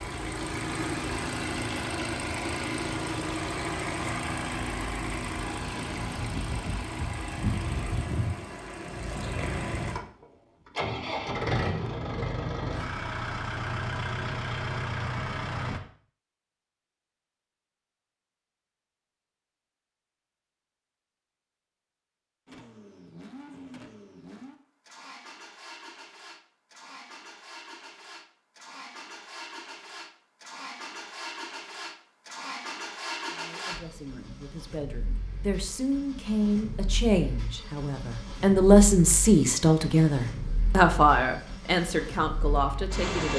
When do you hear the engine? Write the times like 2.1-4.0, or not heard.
0.0-15.8, 22.4-43.3.